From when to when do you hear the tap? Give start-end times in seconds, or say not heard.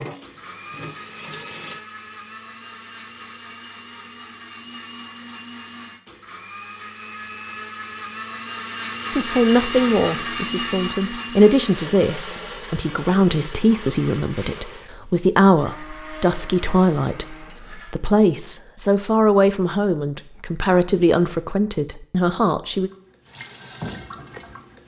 0.0-1.8, 22.7-24.8.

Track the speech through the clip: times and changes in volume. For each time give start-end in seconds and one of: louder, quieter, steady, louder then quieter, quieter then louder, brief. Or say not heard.
9.1-22.9 steady.